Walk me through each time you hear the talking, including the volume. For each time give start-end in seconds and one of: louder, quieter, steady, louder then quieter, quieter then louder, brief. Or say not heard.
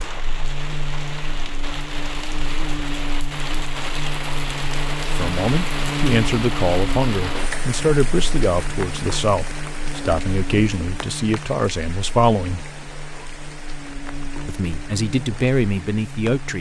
5.0-12.7 steady
14.4-16.5 brief.